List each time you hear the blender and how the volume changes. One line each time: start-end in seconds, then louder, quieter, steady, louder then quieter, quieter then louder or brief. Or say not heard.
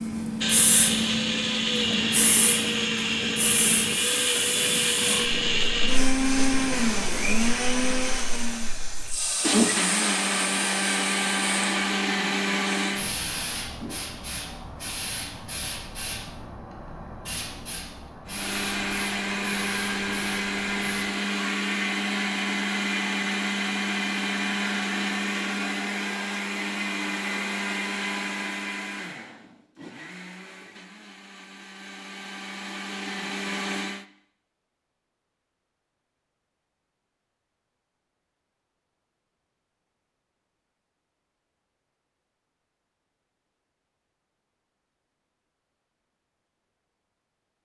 0.4-13.2 steady
18.2-34.0 quieter.